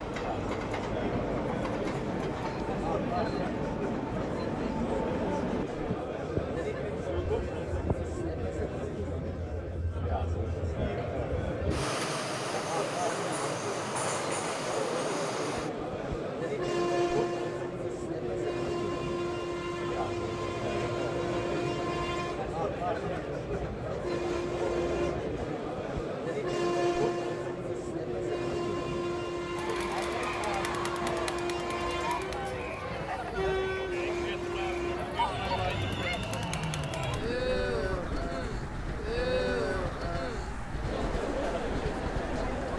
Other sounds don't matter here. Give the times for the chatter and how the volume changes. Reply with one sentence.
You can hear the chatter from 0.0 to 42.7 s, at a steady volume.